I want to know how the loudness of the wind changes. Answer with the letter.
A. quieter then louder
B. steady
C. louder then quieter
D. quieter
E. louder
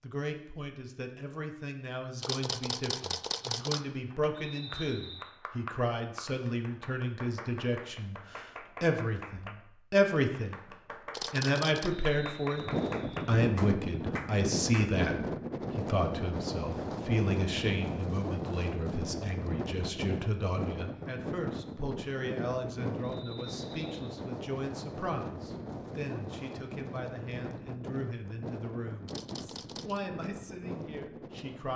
D.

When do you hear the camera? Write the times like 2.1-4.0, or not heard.
2.2-3.9, 11.1-11.9, 29.1-30.0.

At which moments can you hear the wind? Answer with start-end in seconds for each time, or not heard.
12.6-31.7.